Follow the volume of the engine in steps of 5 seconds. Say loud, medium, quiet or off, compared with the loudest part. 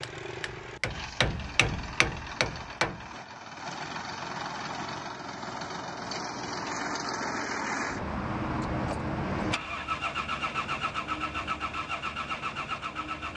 medium, loud, loud.